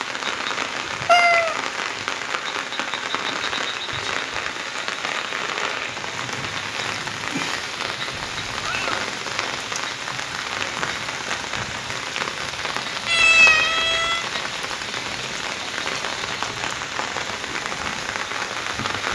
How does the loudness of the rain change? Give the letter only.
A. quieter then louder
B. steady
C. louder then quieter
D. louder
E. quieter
B.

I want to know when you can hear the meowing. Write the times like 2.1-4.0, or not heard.
1.1-1.6, 8.2-8.9, 13.1-14.2.